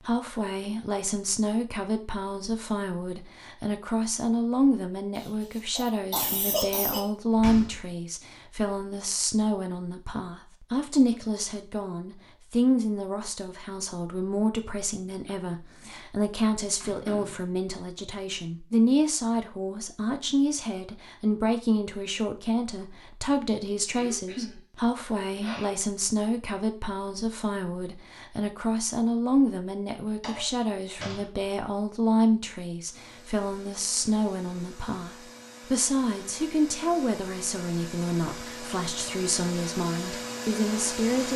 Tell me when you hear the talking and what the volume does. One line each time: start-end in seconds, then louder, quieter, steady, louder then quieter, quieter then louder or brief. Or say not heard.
0.1-41.3 steady.